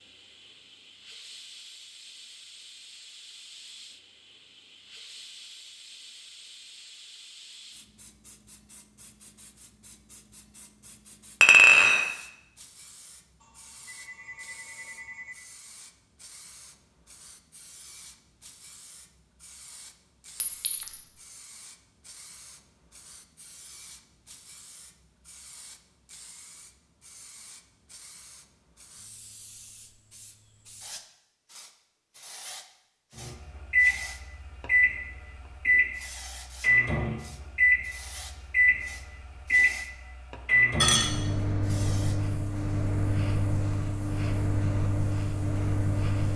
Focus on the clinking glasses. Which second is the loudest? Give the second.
12 s.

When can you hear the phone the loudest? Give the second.
15 s.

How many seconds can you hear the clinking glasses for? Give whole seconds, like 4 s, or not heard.
2 s.